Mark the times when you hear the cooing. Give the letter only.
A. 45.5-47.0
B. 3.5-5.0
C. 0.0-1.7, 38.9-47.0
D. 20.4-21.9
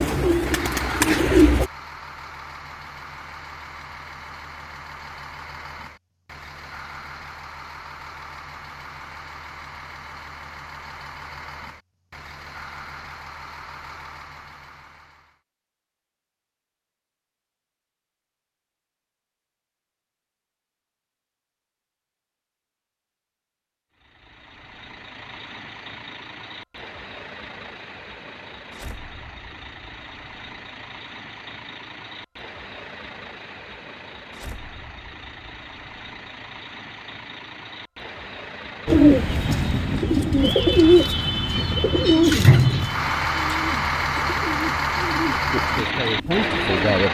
C.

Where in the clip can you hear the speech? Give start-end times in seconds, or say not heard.
45.5-47.0.